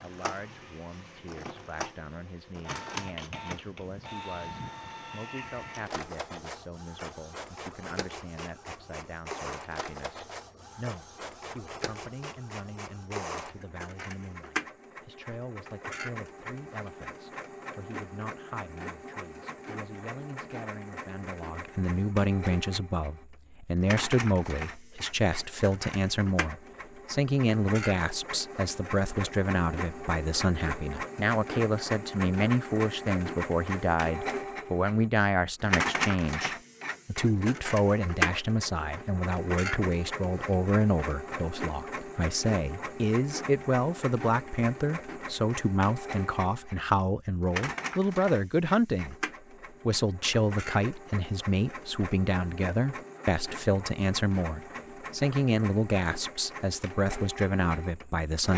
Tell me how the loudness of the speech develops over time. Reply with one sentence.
The loudness of the speech goes up.